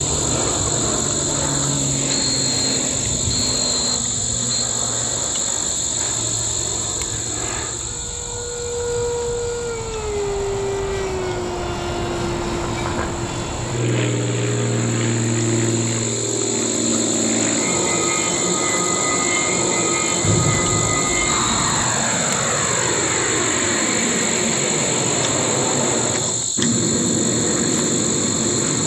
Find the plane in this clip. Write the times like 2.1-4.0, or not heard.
0.0-28.8.